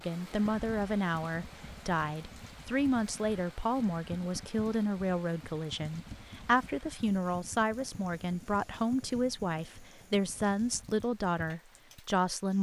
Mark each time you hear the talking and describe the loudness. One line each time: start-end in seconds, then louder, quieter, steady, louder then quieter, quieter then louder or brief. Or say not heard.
0.0-12.5 steady.